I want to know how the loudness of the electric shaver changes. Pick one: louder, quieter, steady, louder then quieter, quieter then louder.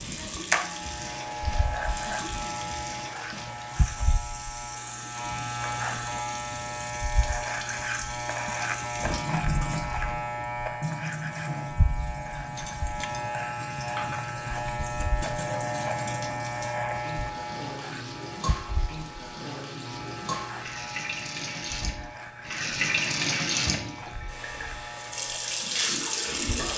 quieter.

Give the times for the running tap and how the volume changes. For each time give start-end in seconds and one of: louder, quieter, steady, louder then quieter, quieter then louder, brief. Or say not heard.
0.0-26.7 louder.